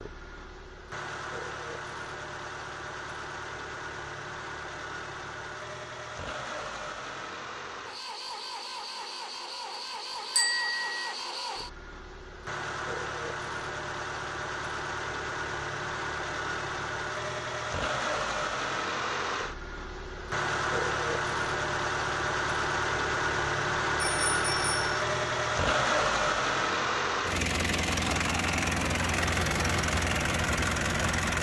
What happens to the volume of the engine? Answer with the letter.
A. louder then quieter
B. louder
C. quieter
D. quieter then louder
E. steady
B.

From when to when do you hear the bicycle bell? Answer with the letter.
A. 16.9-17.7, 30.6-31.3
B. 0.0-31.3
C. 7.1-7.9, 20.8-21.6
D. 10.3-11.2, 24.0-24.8
D.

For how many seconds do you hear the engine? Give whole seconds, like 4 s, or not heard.
31 s.